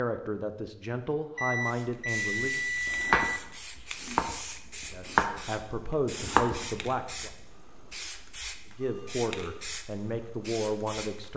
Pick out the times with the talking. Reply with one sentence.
The talking can be heard from 0.0 to 2.6 s, from 4.9 to 7.3 s and from 8.8 to 11.3 s.